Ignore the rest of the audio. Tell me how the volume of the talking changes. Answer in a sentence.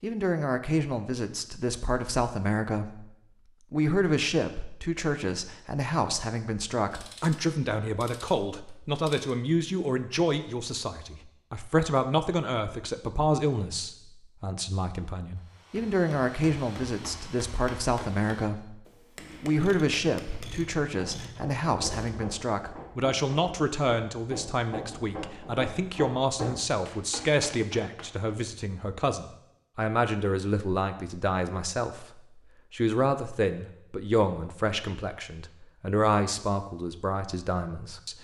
The volume of the talking stays about the same.